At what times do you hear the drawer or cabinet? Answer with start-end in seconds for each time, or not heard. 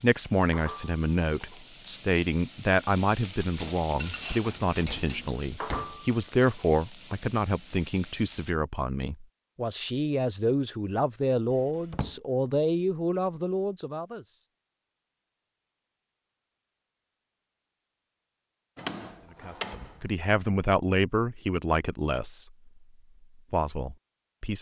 4.8-6.0, 11.5-12.2, 18.8-20.1.